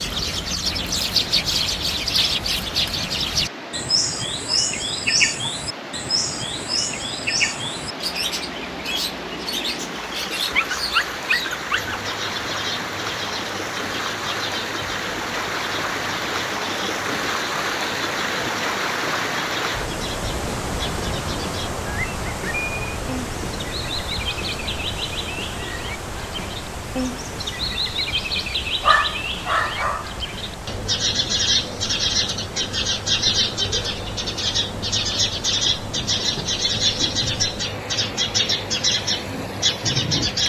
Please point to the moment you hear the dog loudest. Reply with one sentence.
The volume of the dog peaks at 29 seconds.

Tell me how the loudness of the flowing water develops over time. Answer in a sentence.
The loudness of the flowing water goes up, then down.